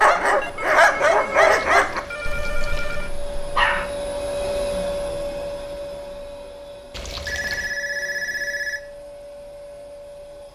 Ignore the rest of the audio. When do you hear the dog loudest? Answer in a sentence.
The volume of the dog peaks at 1 second.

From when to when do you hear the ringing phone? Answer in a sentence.
You can hear the ringing phone from 0.4 to 3.1 s and from 7.2 to 8.8 s.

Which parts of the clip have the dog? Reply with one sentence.
The dog can be heard from 0.0 to 3.9 s.